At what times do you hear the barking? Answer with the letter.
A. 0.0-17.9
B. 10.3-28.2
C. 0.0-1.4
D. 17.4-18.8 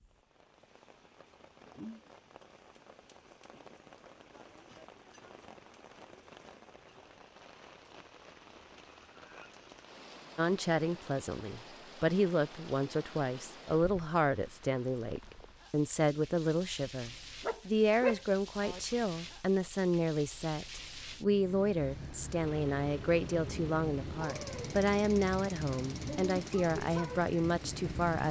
D.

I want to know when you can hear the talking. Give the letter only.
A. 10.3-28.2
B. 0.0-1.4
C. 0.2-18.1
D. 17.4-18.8
A.